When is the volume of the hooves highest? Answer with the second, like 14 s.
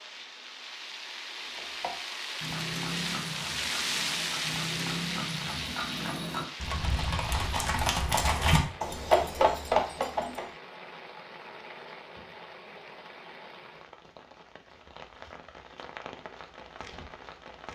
9 s.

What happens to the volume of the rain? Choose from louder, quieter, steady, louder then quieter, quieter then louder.
quieter.